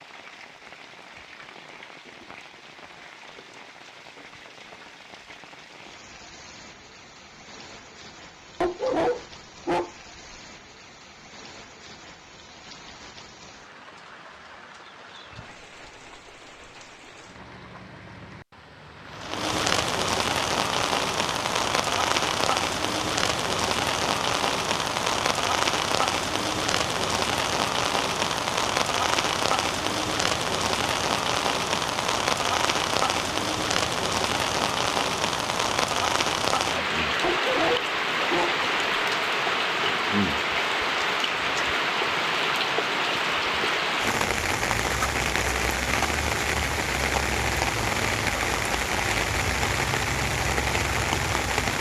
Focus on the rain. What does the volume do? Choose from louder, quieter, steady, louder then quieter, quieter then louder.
louder.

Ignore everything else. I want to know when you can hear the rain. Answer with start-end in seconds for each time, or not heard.
0.0-51.7.